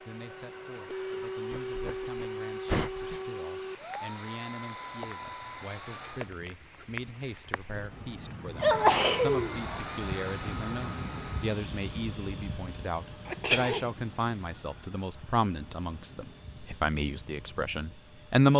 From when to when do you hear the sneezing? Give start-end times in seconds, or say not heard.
1.5-3.2, 8.6-9.8, 13.2-13.8.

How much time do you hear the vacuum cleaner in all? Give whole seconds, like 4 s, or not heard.
16 s.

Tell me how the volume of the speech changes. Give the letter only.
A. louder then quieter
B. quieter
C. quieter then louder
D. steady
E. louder
E.